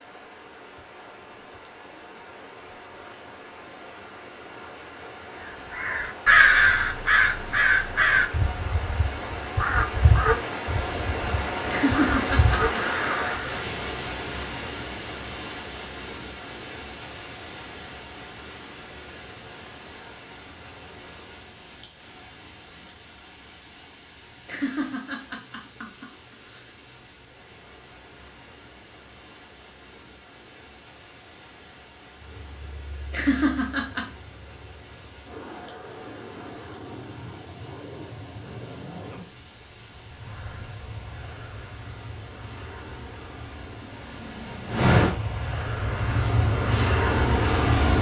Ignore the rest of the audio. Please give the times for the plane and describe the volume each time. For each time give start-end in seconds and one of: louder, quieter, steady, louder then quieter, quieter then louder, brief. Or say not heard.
32.1-47.9 louder.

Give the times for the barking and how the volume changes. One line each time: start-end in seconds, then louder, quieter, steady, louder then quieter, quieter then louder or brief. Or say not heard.
not heard.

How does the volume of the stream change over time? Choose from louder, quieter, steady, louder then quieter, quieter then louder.
louder then quieter.